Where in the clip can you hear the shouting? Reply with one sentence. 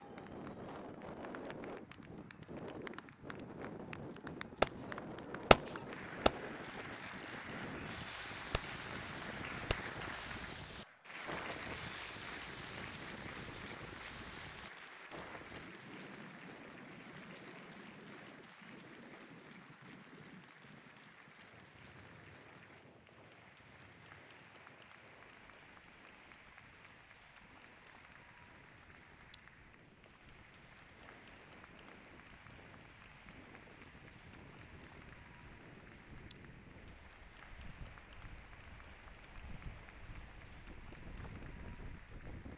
You can't hear the shouting here.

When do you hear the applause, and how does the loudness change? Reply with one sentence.
The applause can be heard from 0.0 to 42.5 s, getting quieter.